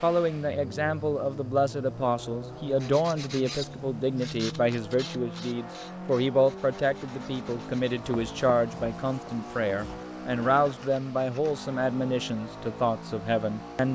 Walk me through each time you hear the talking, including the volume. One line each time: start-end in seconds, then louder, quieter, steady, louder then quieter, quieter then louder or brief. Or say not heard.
0.0-13.8 steady.